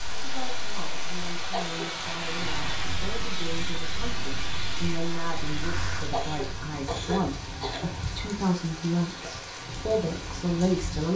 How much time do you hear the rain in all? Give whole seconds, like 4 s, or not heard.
11 s.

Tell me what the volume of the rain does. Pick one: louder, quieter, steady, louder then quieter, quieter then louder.
steady.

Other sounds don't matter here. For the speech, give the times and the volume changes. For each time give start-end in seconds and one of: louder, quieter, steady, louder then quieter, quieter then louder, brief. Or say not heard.
0.1-11.1 louder.